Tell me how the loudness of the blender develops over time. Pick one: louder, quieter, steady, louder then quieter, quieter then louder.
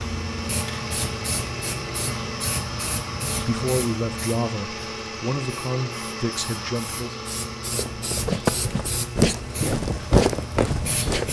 quieter.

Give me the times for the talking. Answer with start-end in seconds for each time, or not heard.
3.4-7.2.